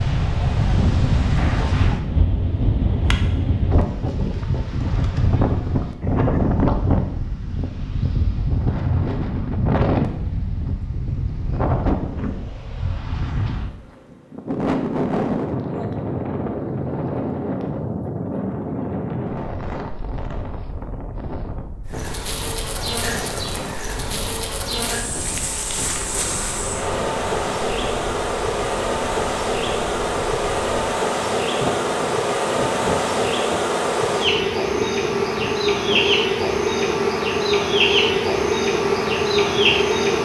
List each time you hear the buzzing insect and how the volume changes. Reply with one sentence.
You can hear the buzzing insect from 21.9 to 40.2 s, getting louder.